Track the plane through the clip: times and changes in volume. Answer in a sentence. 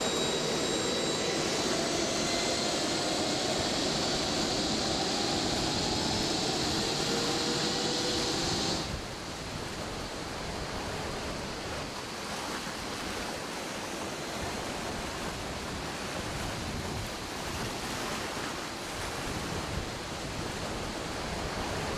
The plane can be heard from 0.0 to 21.9 s, getting quieter.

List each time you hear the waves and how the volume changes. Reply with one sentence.
The waves can be heard from 0.0 to 21.9 s, at a steady volume.